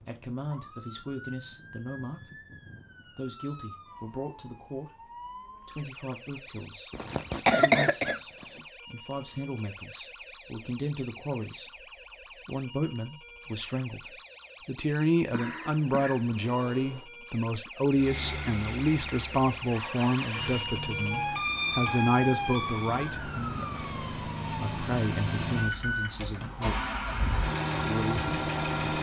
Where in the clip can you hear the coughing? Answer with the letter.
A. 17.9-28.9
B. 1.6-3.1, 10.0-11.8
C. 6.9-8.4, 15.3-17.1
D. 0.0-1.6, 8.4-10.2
C.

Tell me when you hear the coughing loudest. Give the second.
8 s.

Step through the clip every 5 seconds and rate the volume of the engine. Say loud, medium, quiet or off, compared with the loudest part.
off, off, off, medium, medium, loud.